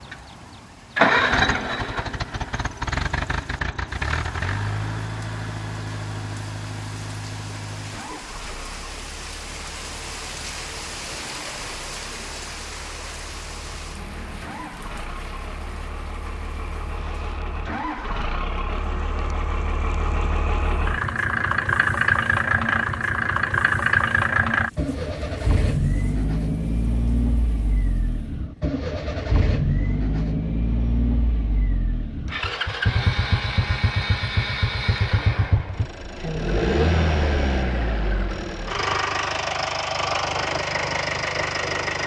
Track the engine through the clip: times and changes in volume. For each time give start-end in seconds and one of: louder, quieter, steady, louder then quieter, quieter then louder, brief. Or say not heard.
0.0-42.0 quieter then louder.